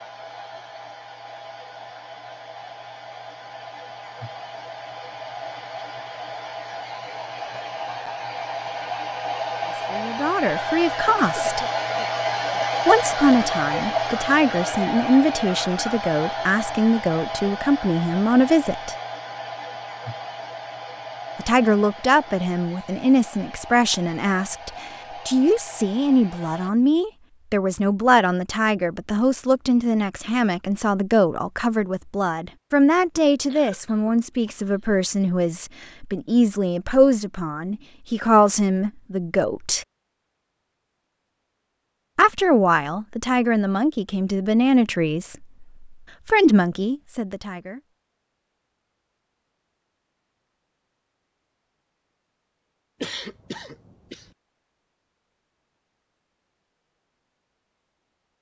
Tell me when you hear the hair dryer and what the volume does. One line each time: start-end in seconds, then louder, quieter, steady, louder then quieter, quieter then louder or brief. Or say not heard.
0.0-26.7 louder then quieter.